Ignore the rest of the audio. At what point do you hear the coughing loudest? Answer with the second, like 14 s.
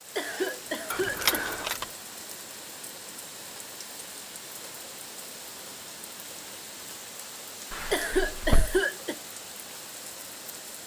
8 s.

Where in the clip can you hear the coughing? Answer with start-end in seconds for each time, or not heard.
0.1-1.5, 7.9-9.2.